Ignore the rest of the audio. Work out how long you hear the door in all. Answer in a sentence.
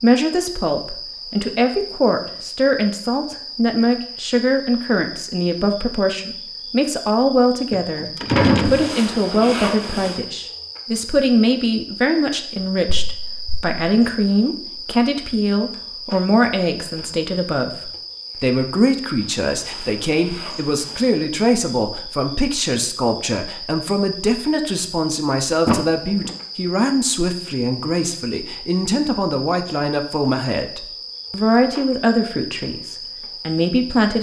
The door can be heard for 3 seconds in total.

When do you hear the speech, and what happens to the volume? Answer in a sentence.
The speech can be heard from 0.0 to 34.1 s, at a steady volume.